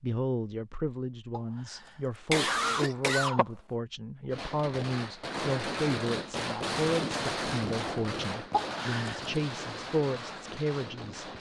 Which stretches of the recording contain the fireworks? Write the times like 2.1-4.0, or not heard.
4.3-11.3.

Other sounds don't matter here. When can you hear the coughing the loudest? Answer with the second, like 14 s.
2 s.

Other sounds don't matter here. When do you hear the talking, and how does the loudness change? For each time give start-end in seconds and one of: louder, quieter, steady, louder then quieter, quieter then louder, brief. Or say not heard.
0.0-11.3 steady.